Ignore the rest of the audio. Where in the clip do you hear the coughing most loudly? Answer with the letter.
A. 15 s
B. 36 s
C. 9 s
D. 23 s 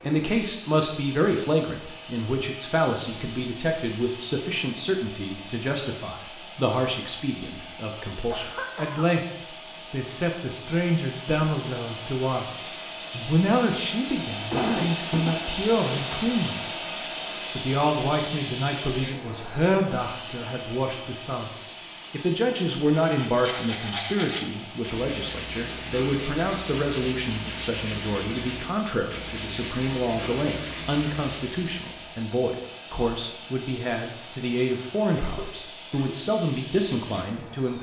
A.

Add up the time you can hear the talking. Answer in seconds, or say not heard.
37 s.